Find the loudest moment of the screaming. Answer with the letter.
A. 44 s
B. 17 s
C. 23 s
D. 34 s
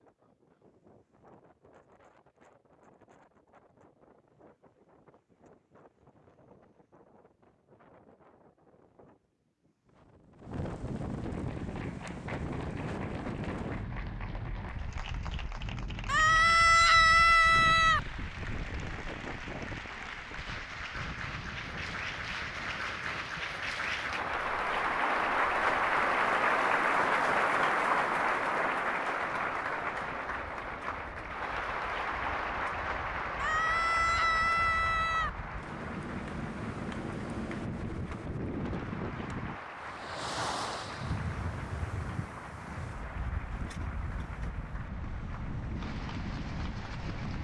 B.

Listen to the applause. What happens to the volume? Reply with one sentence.
The loudness of the applause goes up, then down.